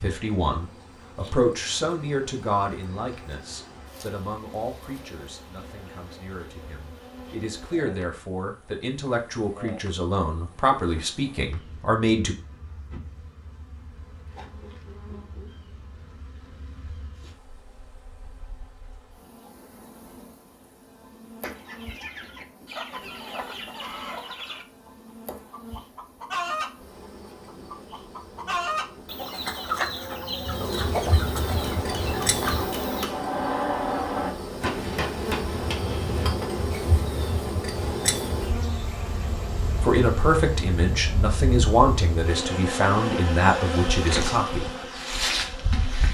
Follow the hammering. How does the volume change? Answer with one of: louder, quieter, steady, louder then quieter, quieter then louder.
louder then quieter.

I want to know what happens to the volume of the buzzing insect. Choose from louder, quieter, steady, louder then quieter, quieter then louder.
louder.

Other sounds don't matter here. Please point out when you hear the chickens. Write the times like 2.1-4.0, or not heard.
21.4-24.6, 25.3-26.8, 27.4-33.0.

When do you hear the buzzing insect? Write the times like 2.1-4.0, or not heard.
0.0-46.0.